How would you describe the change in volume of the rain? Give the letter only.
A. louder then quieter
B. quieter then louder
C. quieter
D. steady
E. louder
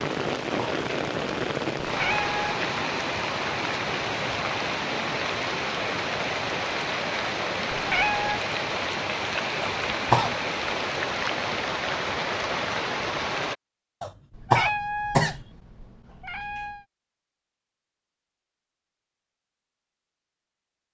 D.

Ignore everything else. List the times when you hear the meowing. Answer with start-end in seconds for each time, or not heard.
1.9-2.5, 7.8-8.4, 14.3-16.9.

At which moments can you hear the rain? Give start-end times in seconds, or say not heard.
0.0-13.6.